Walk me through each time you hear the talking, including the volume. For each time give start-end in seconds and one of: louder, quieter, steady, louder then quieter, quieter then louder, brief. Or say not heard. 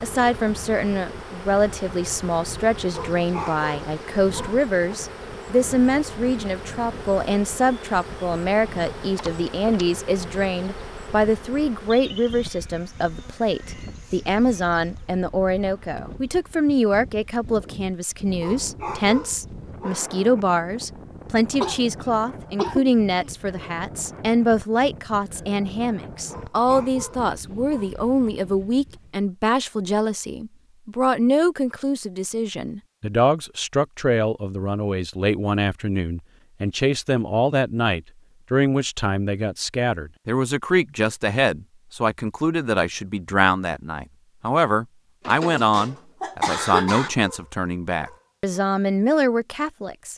0.0-50.1 steady.